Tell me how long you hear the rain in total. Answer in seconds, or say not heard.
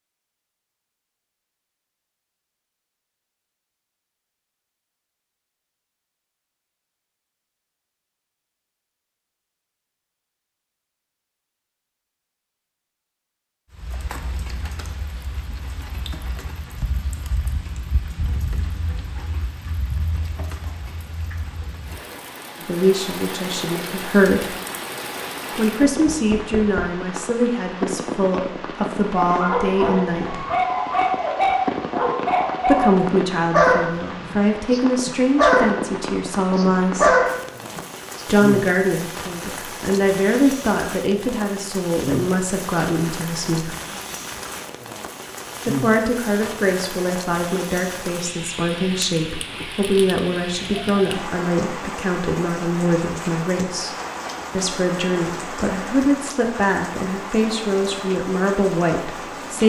46 s.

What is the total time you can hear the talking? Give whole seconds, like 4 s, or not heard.
30 s.